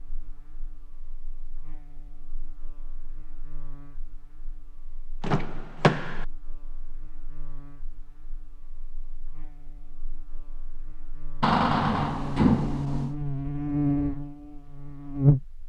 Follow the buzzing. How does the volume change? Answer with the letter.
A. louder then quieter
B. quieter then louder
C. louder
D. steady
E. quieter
C.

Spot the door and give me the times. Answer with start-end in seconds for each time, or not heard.
5.2-6.2, 11.4-13.2.